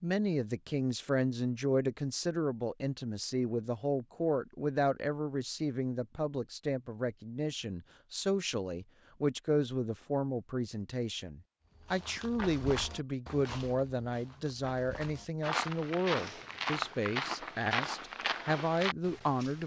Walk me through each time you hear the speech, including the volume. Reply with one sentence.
The speech can be heard from 0.0 to 19.6 s, at a steady volume.